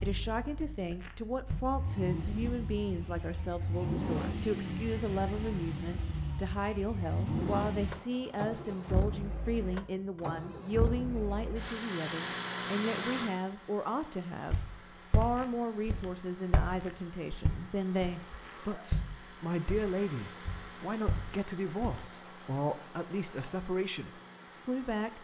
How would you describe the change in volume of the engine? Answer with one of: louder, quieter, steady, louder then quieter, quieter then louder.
quieter.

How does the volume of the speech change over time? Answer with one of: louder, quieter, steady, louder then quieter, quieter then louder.
steady.